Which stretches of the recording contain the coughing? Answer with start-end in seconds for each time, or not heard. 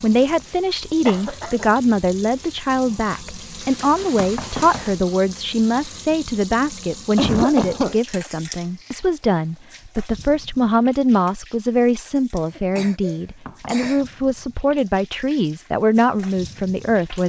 1.1-1.7, 7.2-8.3, 12.4-14.1.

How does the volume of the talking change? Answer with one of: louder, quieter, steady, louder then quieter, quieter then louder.
steady.